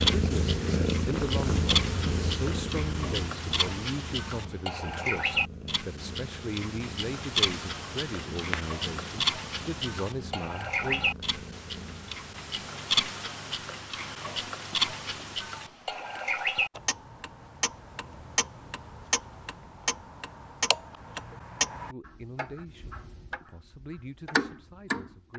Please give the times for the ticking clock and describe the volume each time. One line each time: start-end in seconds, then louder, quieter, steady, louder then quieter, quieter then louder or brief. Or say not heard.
0.0-25.3 steady.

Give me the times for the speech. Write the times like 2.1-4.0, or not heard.
0.1-11.1, 21.9-25.3.